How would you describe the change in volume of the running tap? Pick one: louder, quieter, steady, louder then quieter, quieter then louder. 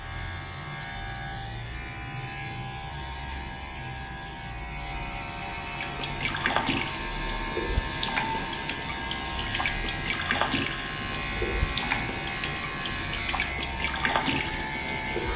steady.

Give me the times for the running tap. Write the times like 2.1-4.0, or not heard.
5.8-15.3.